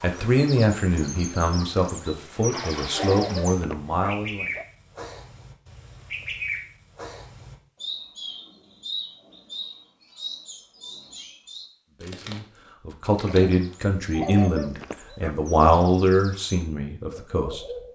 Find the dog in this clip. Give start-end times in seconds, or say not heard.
2.9-4.7, 14.1-15.4.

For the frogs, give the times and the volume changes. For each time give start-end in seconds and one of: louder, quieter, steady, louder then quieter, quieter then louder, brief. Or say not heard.
not heard.